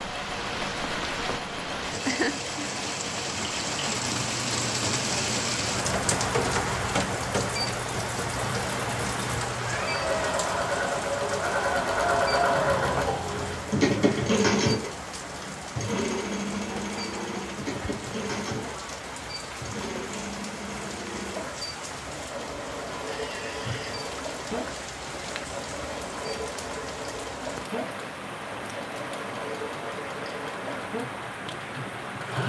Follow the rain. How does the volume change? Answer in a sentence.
The loudness of the rain goes down.